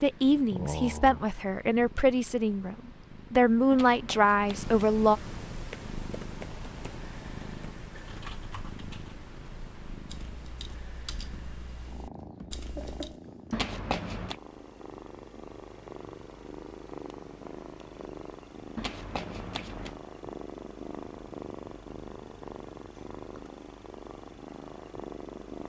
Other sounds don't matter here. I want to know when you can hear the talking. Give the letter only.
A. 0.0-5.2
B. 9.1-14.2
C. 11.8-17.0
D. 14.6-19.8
A.